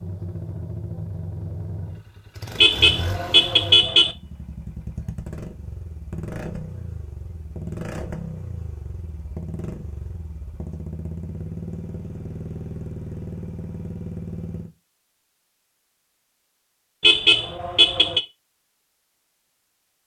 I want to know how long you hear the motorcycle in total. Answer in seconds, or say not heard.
15 s.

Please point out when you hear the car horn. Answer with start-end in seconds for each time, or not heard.
2.5-4.2, 17.0-18.2.